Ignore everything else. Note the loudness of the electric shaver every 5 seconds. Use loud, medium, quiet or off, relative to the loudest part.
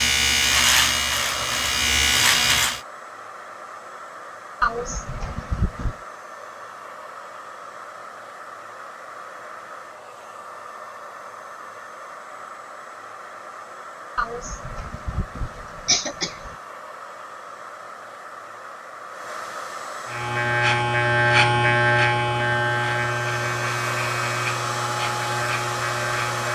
loud, off, off, off, loud, medium.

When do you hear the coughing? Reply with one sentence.
You can hear the coughing from 4.6 to 6.0 s and from 14.2 to 16.6 s.